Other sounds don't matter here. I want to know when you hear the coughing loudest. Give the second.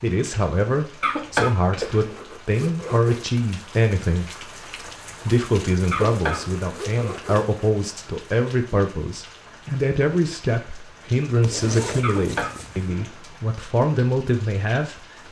1 s.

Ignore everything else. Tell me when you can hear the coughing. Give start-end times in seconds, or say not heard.
1.0-2.0, 5.9-6.5, 12.0-13.4.